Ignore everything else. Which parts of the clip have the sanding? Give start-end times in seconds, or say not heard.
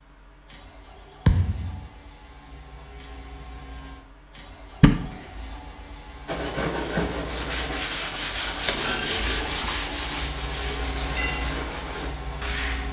6.2-12.8.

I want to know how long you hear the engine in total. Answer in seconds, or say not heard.
13 s.